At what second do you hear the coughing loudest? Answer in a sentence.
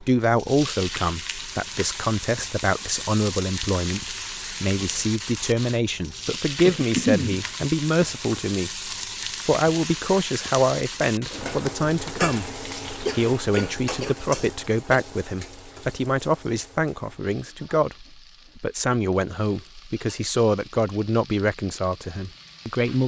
The volume of the coughing peaks at 7 seconds.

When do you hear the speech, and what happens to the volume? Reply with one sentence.
The speech can be heard from 0.0 to 23.0 s, at a steady volume.